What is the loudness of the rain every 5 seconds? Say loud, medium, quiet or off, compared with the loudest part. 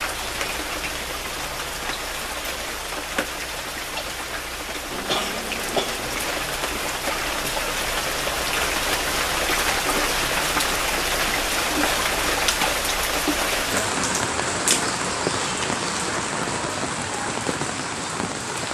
medium, loud, loud, loud.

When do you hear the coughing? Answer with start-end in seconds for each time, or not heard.
4.9-6.3.